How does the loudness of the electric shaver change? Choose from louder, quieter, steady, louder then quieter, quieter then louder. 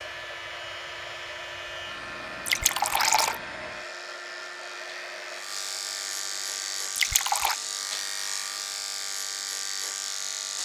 louder.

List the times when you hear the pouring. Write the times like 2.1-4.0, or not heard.
2.5-3.4, 7.0-7.6.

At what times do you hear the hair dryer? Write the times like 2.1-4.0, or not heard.
0.0-6.8.